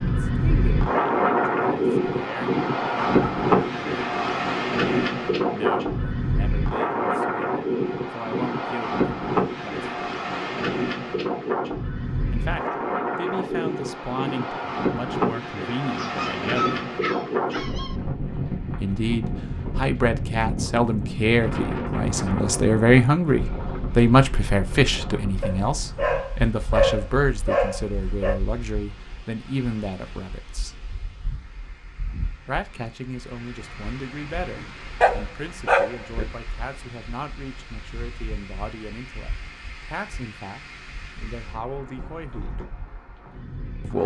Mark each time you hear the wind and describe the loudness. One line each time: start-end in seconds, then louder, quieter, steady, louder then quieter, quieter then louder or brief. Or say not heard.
0.0-44.0 quieter.